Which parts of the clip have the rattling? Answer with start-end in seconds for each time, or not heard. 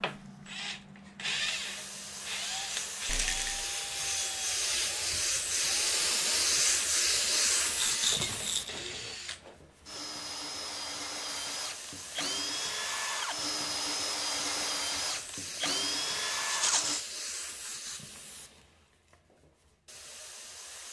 3.0-3.6, 7.8-8.9, 16.4-17.1.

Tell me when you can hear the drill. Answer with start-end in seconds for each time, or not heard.
0.0-17.0.